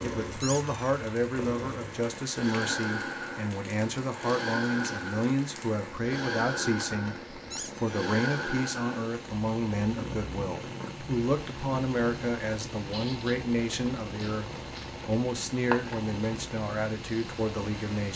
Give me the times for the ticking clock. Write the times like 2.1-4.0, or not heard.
not heard.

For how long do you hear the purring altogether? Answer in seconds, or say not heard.
18 s.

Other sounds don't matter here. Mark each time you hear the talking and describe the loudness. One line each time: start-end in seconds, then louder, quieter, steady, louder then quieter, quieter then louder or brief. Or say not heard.
0.0-18.1 steady.